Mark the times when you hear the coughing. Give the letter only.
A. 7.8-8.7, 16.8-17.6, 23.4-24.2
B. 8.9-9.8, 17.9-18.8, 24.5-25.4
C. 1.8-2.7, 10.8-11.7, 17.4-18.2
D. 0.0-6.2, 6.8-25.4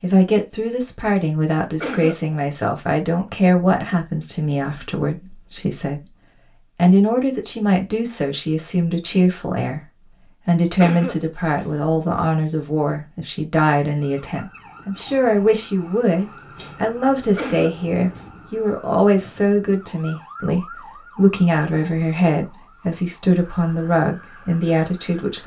C.